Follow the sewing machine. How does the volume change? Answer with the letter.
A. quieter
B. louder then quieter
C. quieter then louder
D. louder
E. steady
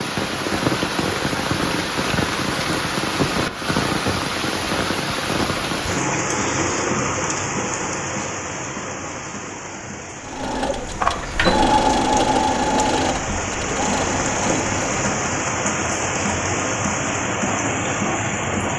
B.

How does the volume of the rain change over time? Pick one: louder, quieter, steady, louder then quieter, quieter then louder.
quieter then louder.